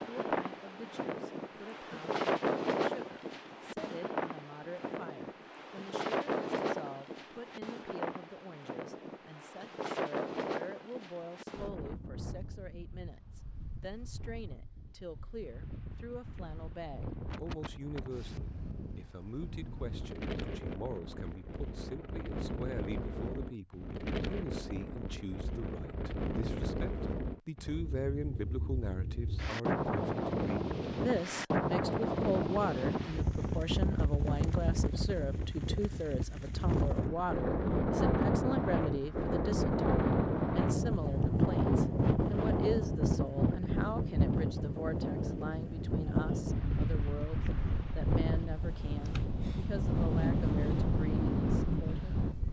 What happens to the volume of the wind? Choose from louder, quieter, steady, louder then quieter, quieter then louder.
quieter then louder.